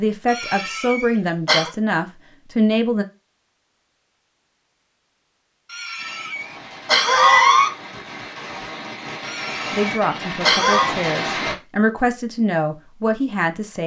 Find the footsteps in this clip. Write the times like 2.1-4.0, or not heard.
not heard.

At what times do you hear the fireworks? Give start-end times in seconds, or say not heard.
6.0-11.6.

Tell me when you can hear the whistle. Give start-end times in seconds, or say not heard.
not heard.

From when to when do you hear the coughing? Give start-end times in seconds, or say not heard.
0.2-1.7, 5.7-7.7, 9.2-10.9.